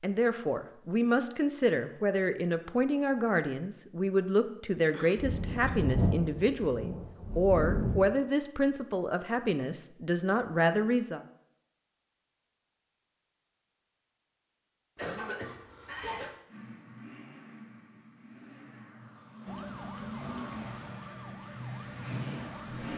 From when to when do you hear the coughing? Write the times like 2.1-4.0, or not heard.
4.9-5.8, 14.9-16.4.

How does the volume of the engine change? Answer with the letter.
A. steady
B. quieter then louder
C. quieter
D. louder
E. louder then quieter
D.